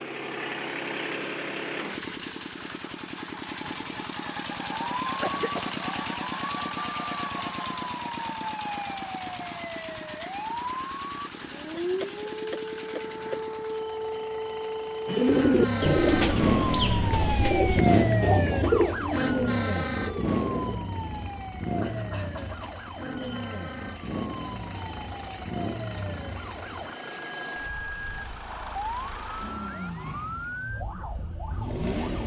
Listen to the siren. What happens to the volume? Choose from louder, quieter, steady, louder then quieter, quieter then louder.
louder then quieter.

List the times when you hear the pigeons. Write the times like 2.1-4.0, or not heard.
15.1-20.8.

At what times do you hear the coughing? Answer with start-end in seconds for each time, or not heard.
5.2-5.8, 11.8-13.4, 21.8-23.4.